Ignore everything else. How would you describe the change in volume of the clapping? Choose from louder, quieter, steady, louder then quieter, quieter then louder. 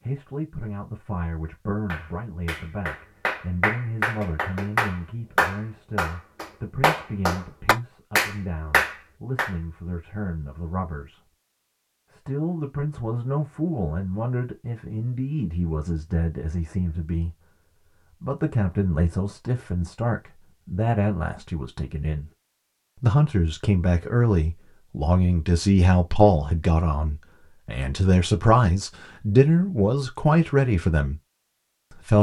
louder.